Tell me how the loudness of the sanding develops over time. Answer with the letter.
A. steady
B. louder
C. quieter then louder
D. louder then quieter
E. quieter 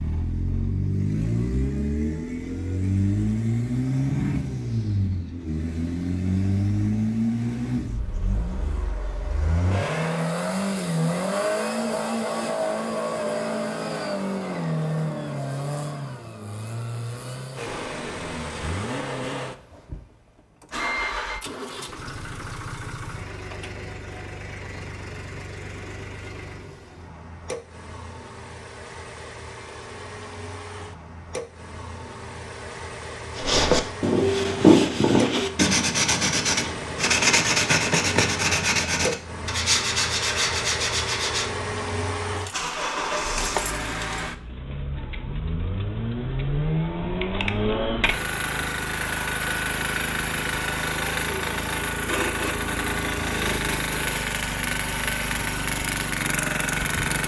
E.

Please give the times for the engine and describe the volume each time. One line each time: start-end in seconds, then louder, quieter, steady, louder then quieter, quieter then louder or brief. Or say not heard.
0.0-57.2 quieter then louder.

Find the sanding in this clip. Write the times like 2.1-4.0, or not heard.
33.4-41.5.